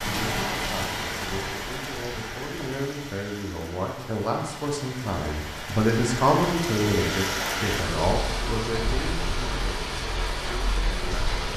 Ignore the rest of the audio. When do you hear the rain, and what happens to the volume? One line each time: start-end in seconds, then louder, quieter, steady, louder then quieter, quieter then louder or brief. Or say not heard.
0.0-11.5 quieter then louder.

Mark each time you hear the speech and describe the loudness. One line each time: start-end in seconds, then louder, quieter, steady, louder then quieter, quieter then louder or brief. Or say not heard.
0.0-11.5 louder then quieter.